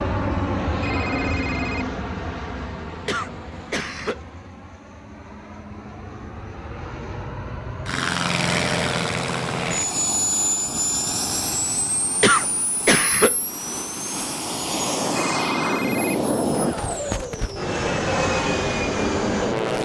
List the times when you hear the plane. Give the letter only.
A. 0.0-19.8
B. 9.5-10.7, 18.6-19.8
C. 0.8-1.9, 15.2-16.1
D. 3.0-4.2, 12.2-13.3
A.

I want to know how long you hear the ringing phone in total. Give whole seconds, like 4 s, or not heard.
2 s.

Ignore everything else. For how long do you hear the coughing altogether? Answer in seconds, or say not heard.
2 s.